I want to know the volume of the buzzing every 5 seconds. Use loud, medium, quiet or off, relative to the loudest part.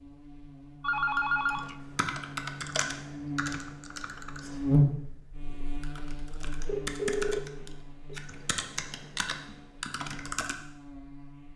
loud, quiet, quiet.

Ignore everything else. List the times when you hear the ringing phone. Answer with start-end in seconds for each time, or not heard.
0.8-2.0, 6.7-8.2.